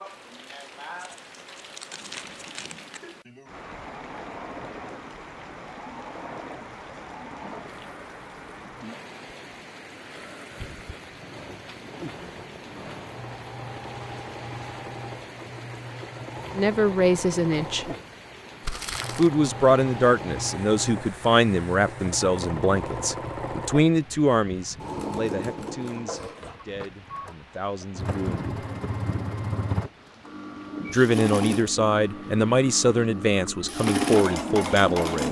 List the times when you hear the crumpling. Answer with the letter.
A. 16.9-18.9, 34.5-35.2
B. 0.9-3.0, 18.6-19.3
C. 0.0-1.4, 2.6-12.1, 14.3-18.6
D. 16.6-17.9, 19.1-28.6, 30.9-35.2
B.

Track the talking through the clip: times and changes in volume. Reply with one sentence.
The talking can be heard briefly from 16.6 to 17.9 s; from 19.1 to 28.6 s, getting quieter; and from 30.9 to 35.2 s, getting quieter then louder.